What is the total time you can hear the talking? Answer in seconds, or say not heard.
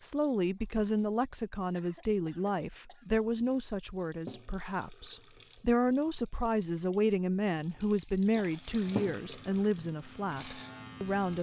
11 s.